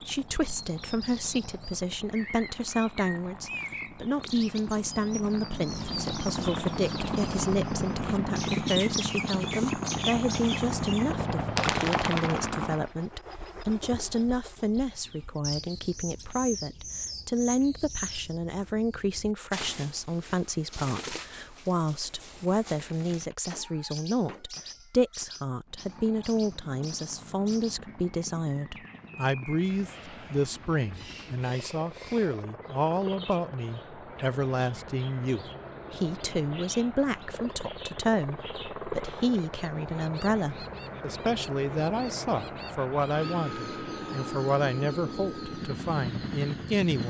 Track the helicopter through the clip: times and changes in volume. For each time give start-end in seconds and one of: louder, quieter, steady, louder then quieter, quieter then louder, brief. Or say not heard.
0.0-12.9 louder
25.6-47.0 louder.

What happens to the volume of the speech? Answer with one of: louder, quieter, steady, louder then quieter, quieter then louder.
steady.